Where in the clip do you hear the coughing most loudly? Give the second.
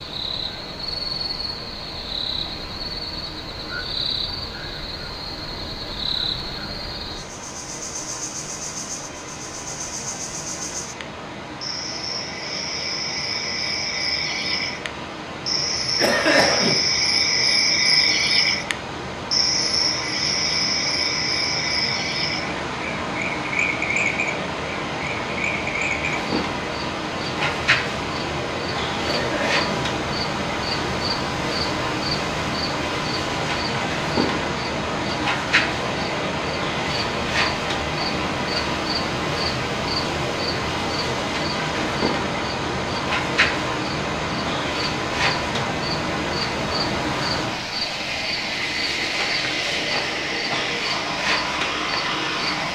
16 s.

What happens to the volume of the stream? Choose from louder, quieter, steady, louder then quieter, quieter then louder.
louder.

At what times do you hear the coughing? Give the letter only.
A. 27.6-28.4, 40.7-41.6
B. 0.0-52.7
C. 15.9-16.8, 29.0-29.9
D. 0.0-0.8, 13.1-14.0
C.